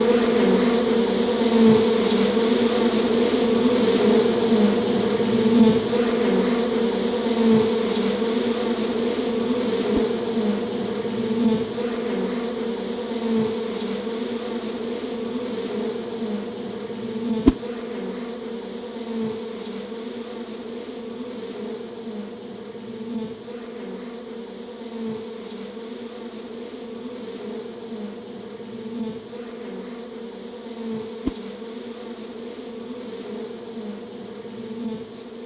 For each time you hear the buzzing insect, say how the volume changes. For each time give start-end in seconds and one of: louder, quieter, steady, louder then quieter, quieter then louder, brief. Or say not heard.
0.0-35.4 quieter.